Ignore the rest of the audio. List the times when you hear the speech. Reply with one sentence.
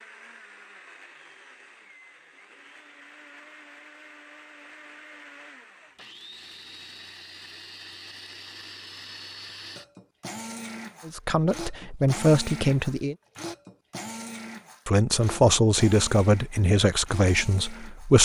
The speech can be heard from 11.1 to 13.2 s and from 14.8 to 18.2 s.